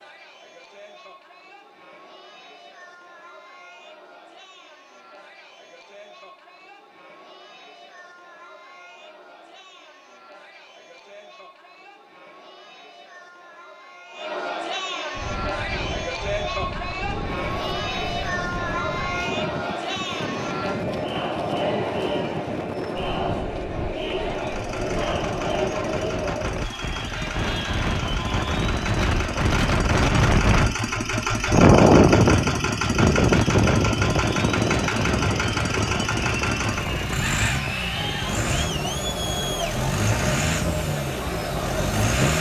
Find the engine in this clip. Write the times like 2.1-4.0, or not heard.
24.2-42.3.